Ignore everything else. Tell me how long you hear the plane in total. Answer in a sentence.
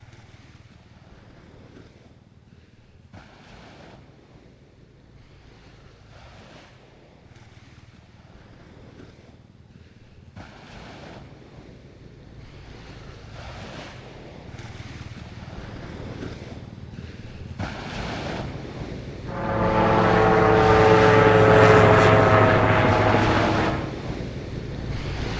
The plane can be heard for 5 seconds in total.